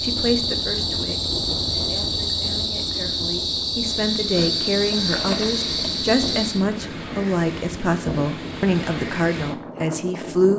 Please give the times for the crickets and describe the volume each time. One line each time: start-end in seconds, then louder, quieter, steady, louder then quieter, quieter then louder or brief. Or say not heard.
0.0-6.7 steady.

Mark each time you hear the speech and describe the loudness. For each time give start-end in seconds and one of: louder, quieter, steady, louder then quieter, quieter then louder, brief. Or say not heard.
0.0-10.5 louder.